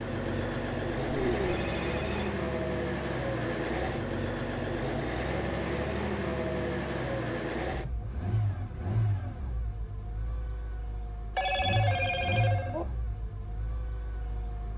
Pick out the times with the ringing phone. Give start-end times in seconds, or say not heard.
1.1-2.1, 11.3-12.8.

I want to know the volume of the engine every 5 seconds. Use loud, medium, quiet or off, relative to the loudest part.
loud, loud, medium.